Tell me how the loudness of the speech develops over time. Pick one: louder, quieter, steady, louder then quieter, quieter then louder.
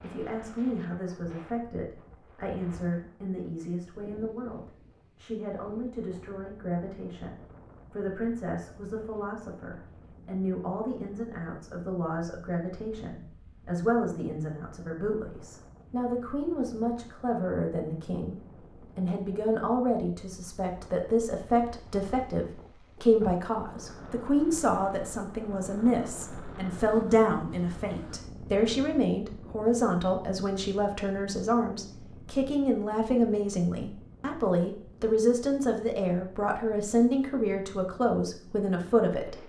louder.